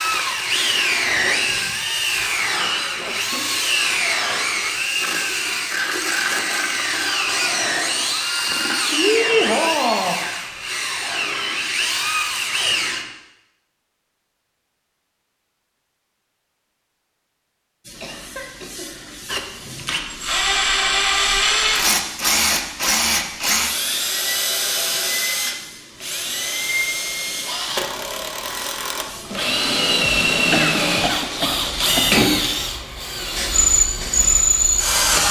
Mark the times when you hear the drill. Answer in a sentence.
You can hear the drill from 0.0 to 13.1 s and from 19.2 to 35.2 s.